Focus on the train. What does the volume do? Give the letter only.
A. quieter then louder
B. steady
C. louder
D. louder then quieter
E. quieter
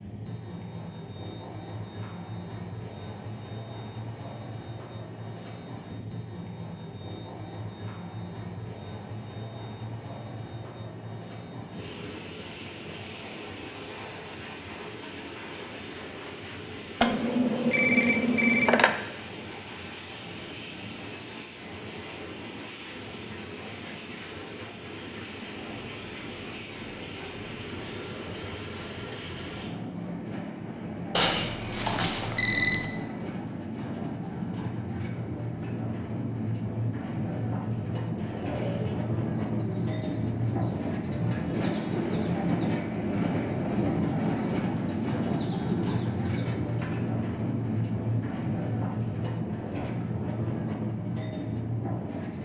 C.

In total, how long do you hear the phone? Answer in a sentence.
The phone can be heard for 4 seconds in total.